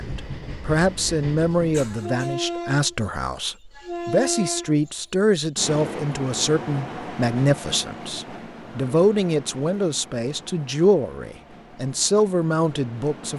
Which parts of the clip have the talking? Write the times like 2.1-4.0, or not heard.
0.0-13.3.